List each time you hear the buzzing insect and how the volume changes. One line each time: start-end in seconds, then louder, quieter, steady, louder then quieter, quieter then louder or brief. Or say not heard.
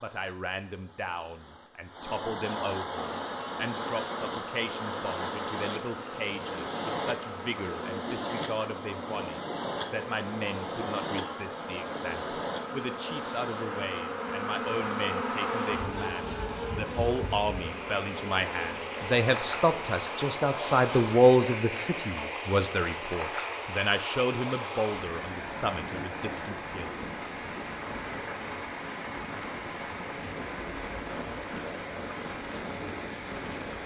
3.0-22.1 louder then quieter.